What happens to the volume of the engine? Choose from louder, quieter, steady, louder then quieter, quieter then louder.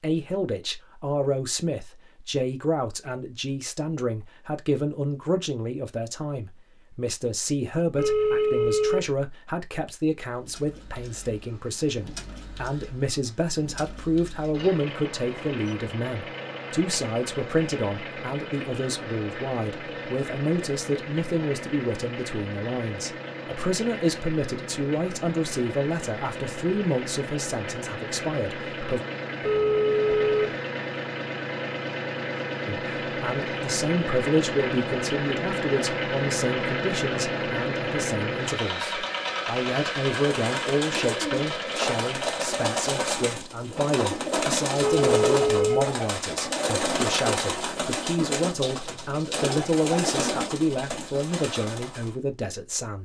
louder.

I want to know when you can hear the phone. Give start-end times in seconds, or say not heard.
8.0-9.1, 29.4-30.4, 44.8-46.0.